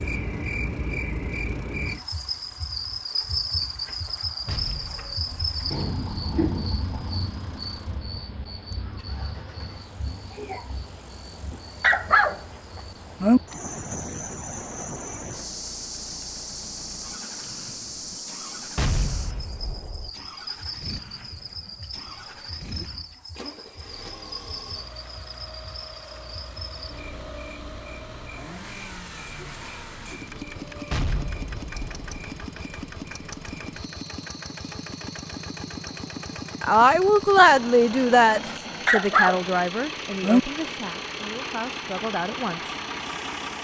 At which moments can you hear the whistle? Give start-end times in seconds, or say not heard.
not heard.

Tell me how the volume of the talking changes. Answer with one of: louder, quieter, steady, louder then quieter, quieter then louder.
quieter.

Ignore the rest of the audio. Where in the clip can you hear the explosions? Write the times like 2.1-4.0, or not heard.
4.5-5.7, 18.8-20.1, 30.9-32.2.